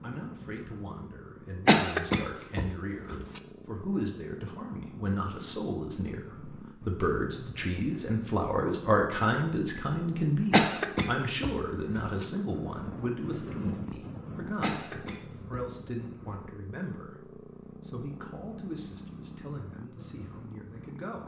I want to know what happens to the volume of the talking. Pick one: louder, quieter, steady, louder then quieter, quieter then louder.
louder then quieter.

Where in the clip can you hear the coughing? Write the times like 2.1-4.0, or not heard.
1.6-3.4, 10.5-12.2, 14.6-15.7.